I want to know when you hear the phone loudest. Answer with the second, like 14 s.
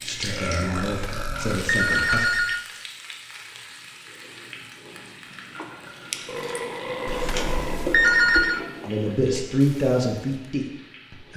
8 s.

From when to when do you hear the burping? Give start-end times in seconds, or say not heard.
0.2-1.9, 6.2-8.7.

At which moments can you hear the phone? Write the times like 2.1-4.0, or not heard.
0.8-2.6, 7.0-8.6.